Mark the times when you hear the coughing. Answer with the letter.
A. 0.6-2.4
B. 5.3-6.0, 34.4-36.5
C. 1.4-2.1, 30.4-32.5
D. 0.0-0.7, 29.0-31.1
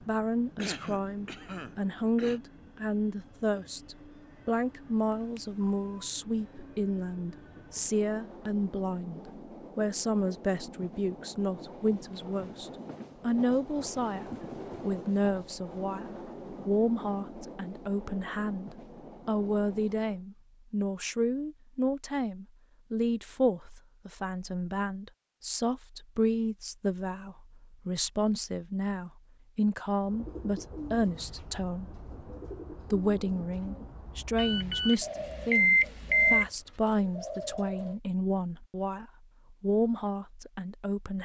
A.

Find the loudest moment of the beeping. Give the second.
36 s.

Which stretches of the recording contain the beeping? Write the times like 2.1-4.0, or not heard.
5.3-6.0, 34.4-36.5.